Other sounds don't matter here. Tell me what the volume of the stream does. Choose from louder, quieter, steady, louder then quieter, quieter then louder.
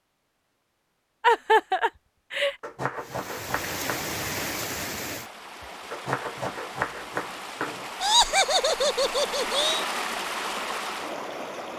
quieter then louder.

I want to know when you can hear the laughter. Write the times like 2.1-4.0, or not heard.
1.2-2.5, 8.0-9.8.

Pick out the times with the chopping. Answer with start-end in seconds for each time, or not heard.
2.6-4.2, 5.9-7.9.